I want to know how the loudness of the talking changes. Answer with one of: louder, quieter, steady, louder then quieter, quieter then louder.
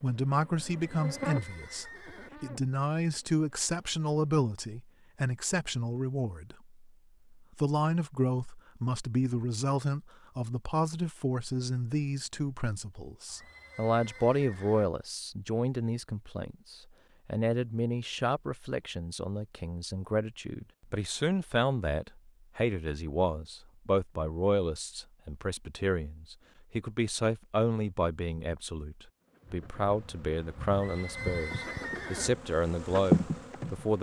steady.